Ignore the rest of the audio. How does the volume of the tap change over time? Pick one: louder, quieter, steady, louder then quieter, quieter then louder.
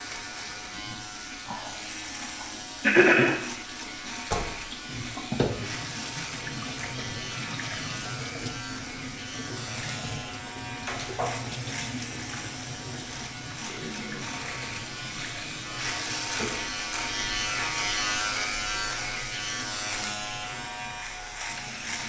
louder then quieter.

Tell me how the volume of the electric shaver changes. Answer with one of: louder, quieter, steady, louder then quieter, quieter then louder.
louder.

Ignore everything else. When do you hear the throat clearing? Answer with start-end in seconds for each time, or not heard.
2.4-3.3, 13.7-14.4.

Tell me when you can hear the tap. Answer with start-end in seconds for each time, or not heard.
0.0-22.0.